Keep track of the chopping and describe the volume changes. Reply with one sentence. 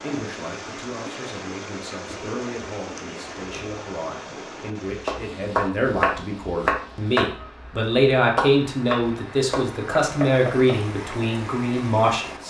The loudness of the chopping goes down.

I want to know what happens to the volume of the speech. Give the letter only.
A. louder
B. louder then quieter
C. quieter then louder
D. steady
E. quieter
A.